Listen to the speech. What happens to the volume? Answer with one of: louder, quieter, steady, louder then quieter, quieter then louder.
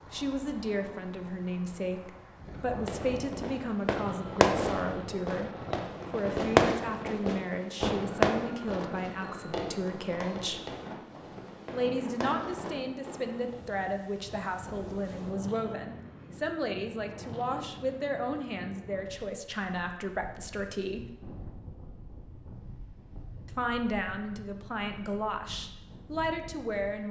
steady.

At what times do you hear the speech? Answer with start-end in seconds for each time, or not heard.
0.1-10.7, 11.7-21.1, 23.4-27.0.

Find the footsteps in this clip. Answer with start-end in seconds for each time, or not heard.
not heard.